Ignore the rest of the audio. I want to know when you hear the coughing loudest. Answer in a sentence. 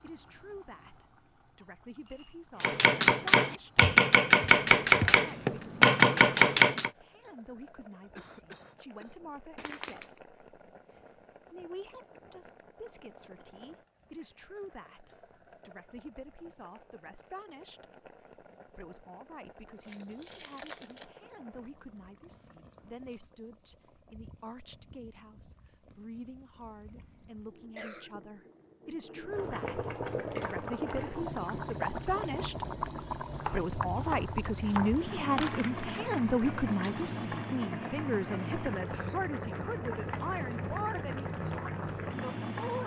The loudest moment of the coughing is at 28 seconds.